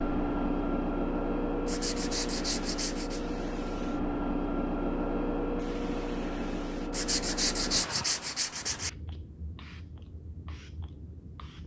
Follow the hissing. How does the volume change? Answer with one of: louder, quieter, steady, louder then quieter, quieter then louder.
quieter.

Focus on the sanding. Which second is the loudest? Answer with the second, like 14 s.
8 s.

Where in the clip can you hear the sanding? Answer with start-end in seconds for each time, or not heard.
1.6-3.2, 6.9-8.9.